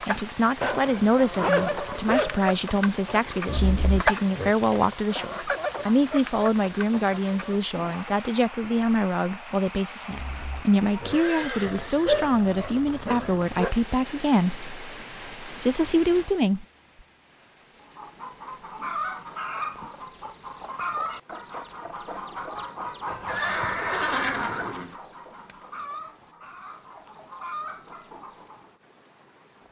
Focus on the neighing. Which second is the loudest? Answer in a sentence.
The volume of the neighing peaks at 24 seconds.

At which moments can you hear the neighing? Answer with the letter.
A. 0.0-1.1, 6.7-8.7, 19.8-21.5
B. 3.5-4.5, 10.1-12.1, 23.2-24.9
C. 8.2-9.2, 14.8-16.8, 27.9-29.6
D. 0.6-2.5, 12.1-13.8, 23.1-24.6
B.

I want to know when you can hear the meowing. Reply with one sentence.
The meowing can't be heard in this clip.